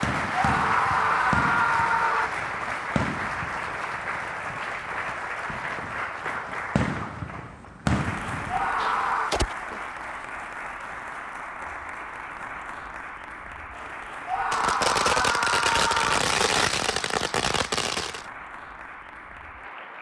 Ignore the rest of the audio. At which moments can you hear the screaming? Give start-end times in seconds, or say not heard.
0.3-2.3, 8.4-9.3, 14.2-16.2.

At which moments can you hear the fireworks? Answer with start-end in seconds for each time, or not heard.
0.0-9.8, 14.5-18.2.